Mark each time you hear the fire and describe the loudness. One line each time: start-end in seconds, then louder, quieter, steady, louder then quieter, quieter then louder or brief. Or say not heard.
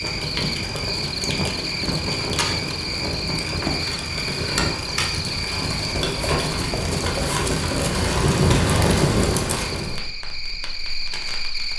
0.0-11.7 louder then quieter.